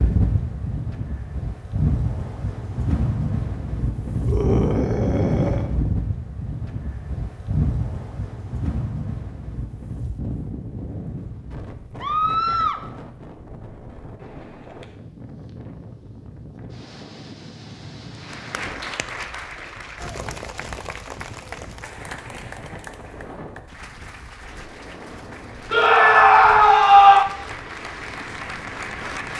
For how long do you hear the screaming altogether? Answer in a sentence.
The screaming can be heard for 4 seconds in total.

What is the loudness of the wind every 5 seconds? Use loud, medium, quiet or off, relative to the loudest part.
loud, loud, medium, quiet, quiet, quiet.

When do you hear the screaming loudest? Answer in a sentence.
The volume of the screaming peaks at 27 seconds.